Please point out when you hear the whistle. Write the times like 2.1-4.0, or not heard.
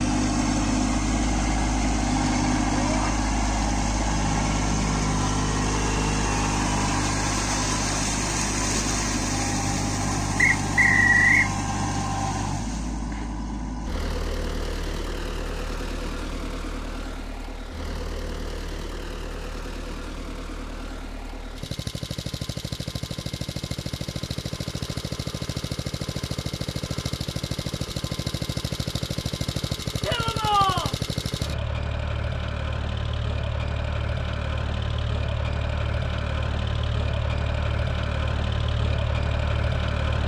10.3-11.5.